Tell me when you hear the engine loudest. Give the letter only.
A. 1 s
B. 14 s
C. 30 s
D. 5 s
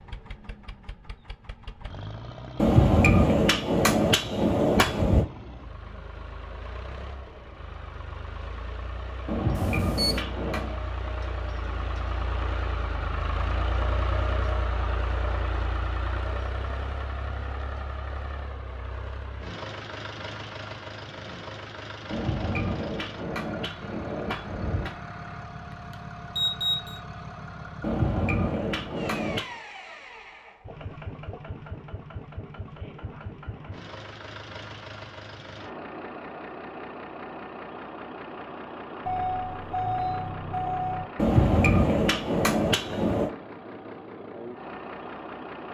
B.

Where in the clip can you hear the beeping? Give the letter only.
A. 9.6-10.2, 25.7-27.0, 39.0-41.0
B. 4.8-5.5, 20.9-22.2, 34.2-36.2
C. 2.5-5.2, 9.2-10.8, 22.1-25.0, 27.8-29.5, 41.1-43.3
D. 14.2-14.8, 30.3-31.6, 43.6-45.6
A.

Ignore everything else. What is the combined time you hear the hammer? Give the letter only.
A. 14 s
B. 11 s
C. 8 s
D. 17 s
B.